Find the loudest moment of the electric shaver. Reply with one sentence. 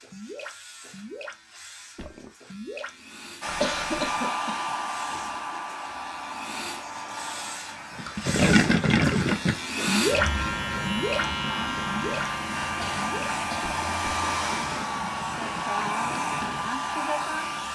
The volume of the electric shaver peaks at 10 seconds.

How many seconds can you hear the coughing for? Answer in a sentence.
The coughing can be heard for 3 seconds in total.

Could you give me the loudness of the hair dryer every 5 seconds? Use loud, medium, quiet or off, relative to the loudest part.
loud, medium, loud, loud.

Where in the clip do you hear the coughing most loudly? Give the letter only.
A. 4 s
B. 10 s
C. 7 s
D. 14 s
A.